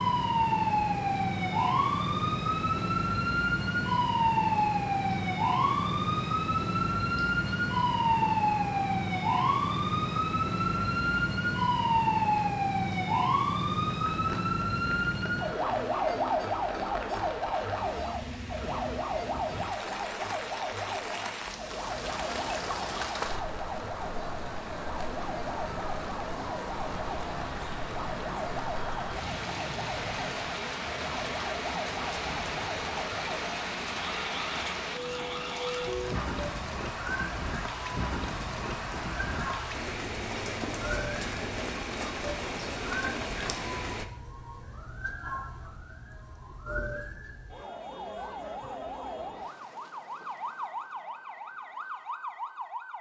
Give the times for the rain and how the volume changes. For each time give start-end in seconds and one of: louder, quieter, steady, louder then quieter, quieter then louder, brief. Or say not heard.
0.0-44.0 louder.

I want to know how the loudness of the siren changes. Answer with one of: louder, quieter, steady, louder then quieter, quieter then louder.
quieter.